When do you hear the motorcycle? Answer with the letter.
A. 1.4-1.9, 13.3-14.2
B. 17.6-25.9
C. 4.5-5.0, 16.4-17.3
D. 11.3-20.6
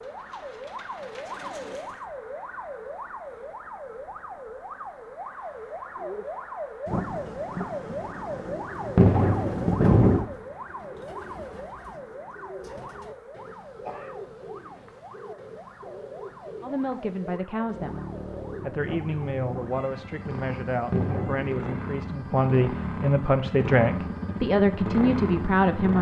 B.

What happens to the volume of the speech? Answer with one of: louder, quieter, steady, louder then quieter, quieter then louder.
louder.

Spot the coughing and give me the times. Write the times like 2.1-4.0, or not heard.
1.4-1.9, 13.3-14.2.